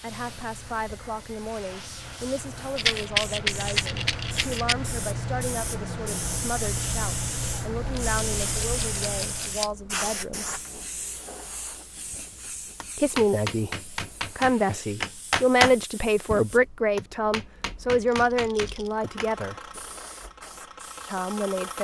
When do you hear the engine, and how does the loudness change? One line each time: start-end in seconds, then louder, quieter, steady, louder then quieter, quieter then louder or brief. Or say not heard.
0.0-9.7 louder
18.9-21.7 brief.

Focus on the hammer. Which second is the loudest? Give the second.
15 s.